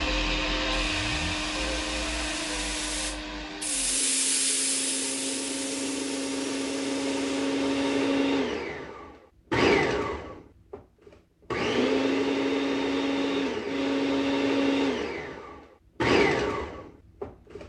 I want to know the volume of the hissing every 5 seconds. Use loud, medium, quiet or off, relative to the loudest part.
loud, medium, off, off.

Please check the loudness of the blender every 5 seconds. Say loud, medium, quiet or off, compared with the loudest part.
medium, loud, loud, loud.